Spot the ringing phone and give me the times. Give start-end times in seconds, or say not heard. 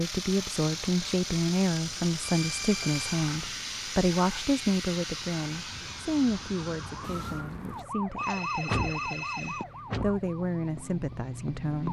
2.2-3.2, 8.2-9.7.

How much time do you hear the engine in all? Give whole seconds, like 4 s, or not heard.
12 s.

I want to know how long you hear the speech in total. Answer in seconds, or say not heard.
12 s.